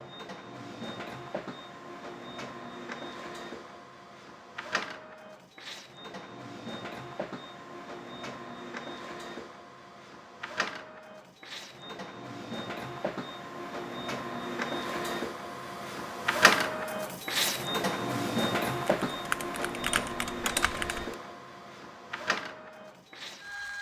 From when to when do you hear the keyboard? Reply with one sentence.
The keyboard can be heard from 18.9 to 21.1 s.